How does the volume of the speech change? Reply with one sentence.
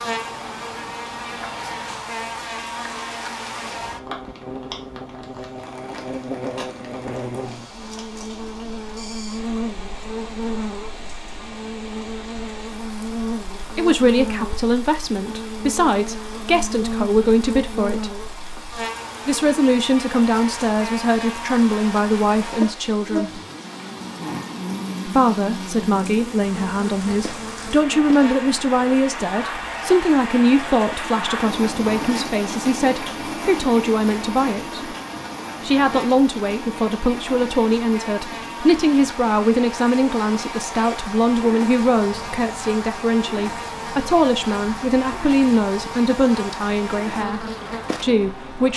The loudness of the speech stays about the same.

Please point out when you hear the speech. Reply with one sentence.
You can hear the speech from 13.8 to 18.1 s, from 19.2 to 23.4 s, from 25.1 to 34.9 s and from 35.6 to 48.7 s.